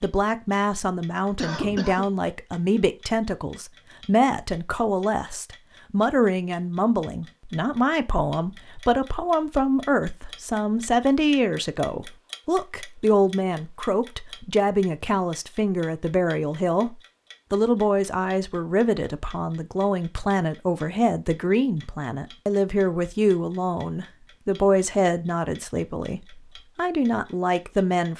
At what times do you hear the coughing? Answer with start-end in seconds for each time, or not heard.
1.4-2.0.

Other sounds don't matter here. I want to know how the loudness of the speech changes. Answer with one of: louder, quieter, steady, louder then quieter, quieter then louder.
steady.